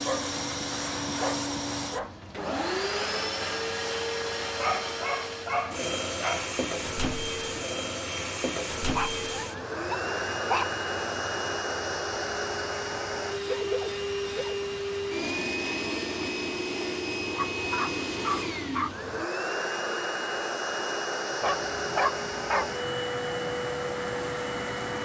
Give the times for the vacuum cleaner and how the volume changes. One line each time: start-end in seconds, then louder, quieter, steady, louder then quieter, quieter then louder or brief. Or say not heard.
0.0-25.0 steady.